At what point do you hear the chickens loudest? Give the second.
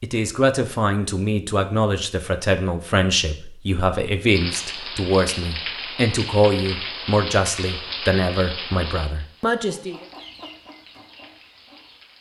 10 s.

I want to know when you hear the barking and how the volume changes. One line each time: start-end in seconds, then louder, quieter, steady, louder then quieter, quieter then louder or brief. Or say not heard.
not heard.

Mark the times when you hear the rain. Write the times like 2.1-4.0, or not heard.
4.2-12.1.